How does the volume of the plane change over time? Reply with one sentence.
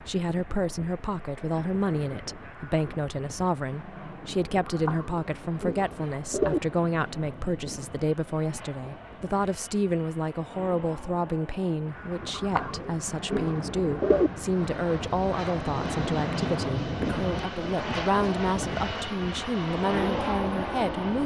The loudness of the plane goes up.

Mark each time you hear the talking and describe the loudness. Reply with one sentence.
The talking can be heard from 0.1 to 21.2 s, at a steady volume.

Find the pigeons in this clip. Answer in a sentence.
You can hear the pigeons from 4.7 to 6.6 s and from 12.3 to 14.3 s.